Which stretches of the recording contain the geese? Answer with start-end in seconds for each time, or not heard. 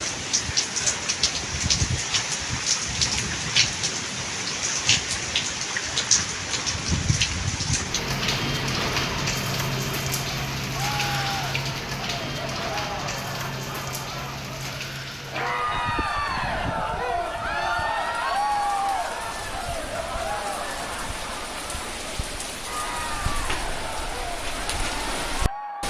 not heard.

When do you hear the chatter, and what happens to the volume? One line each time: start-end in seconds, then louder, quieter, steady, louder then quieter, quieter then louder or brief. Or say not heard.
10.7-25.8 louder then quieter.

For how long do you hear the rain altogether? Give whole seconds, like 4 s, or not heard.
26 s.